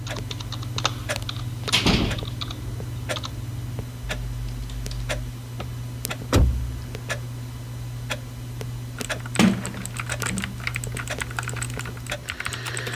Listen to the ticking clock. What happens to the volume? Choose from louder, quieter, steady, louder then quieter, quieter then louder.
steady.